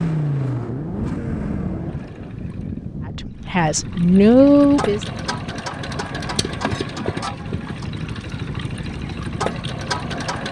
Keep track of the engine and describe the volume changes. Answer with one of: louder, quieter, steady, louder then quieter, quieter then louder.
quieter then louder.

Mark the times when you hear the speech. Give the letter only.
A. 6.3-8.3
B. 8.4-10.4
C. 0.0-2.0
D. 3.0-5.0
D.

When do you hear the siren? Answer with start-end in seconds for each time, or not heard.
not heard.